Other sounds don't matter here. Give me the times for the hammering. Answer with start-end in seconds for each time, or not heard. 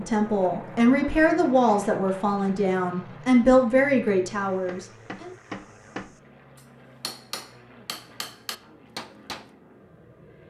4.5-9.5.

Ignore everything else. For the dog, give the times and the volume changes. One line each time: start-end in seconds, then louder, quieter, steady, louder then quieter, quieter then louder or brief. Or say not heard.
not heard.